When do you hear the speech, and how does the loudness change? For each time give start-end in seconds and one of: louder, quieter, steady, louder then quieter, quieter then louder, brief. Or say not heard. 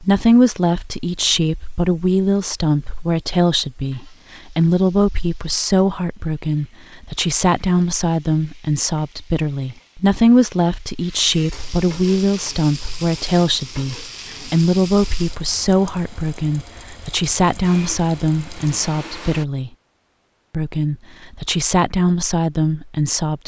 0.0-19.7 steady
20.5-23.4 brief.